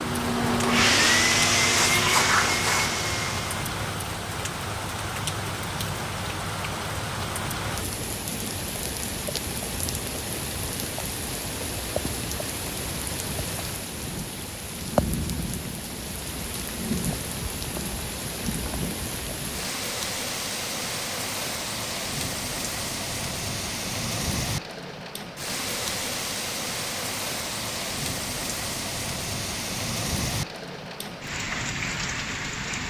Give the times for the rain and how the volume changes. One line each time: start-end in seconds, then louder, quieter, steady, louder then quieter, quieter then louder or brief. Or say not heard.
0.0-32.8 steady.